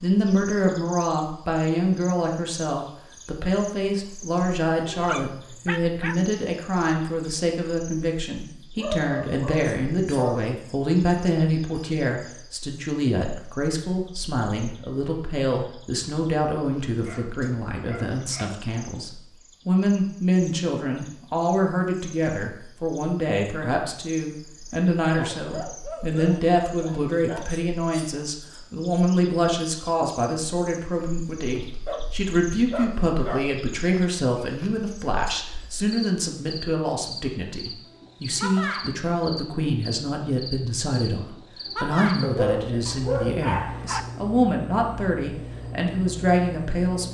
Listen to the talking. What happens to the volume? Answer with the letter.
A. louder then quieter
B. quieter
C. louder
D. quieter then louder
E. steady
E.